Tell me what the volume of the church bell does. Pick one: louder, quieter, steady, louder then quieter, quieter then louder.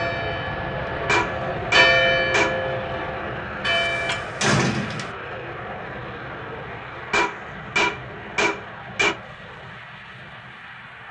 louder then quieter.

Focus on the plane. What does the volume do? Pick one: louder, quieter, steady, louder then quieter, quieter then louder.
quieter.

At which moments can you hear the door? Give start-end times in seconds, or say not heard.
3.6-5.2.